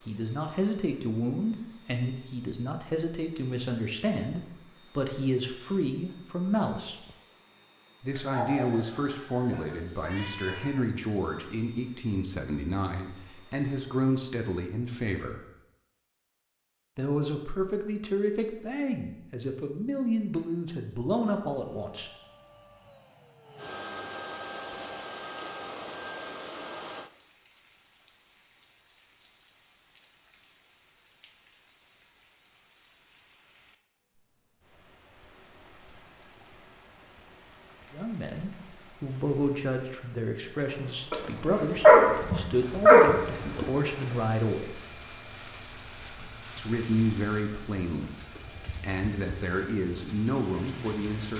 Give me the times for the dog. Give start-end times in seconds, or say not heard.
8.1-10.7, 41.1-43.6.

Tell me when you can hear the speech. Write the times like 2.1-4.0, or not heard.
0.1-7.0, 8.0-15.4, 16.9-22.1, 37.9-44.8, 46.5-51.3.